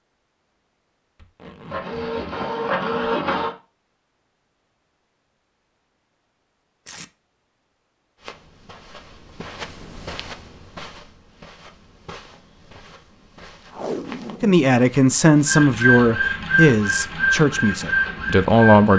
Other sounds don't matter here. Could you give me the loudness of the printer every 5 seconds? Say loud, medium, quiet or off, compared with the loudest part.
loud, off, off, loud.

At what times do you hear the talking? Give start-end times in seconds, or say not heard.
14.4-18.9.